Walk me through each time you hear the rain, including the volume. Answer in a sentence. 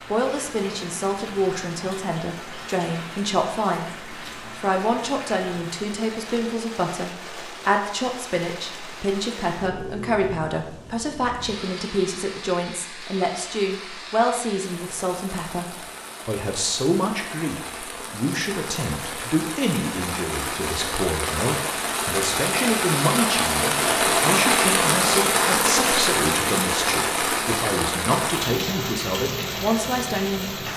The rain can be heard from 0.0 to 30.7 s, getting louder.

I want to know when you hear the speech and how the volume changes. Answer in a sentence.
The speech can be heard from 0.0 to 30.6 s, at a steady volume.